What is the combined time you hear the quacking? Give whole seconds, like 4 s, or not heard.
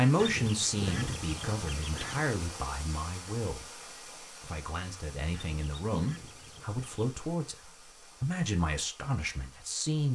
4 s.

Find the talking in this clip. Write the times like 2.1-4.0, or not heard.
0.0-3.6, 4.5-7.5, 8.2-10.1.